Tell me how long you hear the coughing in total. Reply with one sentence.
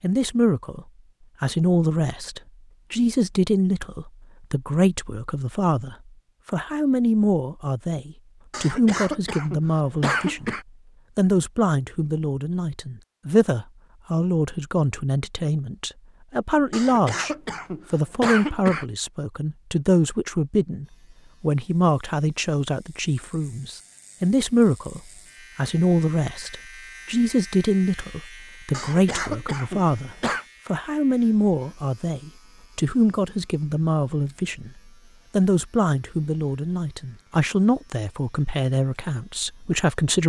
The coughing can be heard for 6 seconds in total.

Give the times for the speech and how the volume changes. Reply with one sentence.
You can hear the speech from 0.0 to 10.6 s, at a steady volume; and from 11.2 to 40.2 s, at a steady volume.